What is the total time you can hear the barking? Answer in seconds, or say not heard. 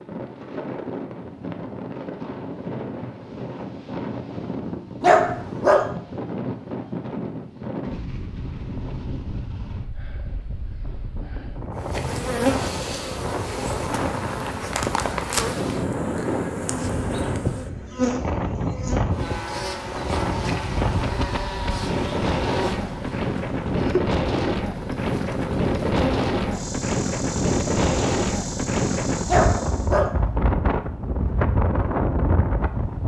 2 s.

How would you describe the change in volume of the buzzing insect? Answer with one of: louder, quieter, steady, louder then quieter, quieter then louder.
quieter.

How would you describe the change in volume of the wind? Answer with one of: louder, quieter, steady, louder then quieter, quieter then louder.
louder.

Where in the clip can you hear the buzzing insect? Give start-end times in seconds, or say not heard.
11.8-29.9.